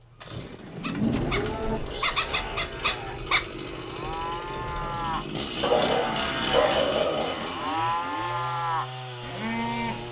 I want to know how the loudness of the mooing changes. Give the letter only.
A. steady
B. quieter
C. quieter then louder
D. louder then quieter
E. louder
C.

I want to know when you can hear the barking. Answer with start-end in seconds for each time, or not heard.
0.8-3.5, 5.6-7.5.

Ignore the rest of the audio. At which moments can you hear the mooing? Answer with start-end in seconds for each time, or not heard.
0.3-10.0.